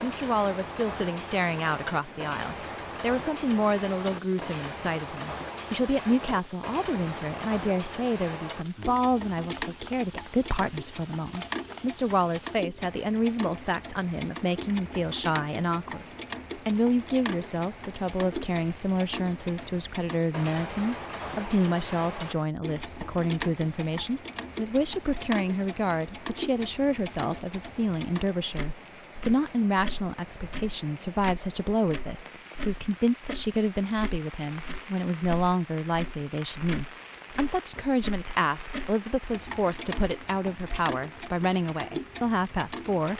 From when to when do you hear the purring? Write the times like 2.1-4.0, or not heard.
not heard.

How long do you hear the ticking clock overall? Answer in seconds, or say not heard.
43 s.